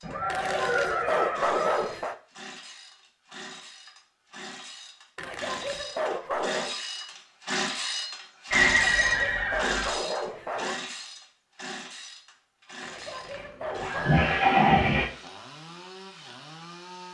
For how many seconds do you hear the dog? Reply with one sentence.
You can hear the dog for 7 seconds altogether.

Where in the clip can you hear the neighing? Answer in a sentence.
The neighing can be heard from 0.0 to 1.9 s, from 8.5 to 9.9 s and from 13.2 to 15.1 s.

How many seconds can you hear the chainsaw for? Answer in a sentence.
You can hear the chainsaw for 17 seconds altogether.